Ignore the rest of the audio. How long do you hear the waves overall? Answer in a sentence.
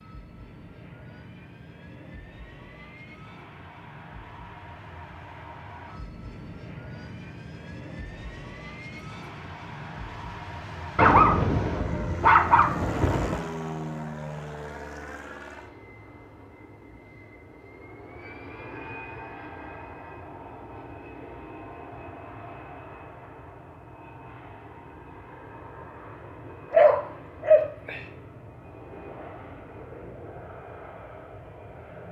You can't hear the waves here.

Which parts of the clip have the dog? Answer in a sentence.
The dog can be heard from 10.9 to 13.4 s and from 26.7 to 28.0 s.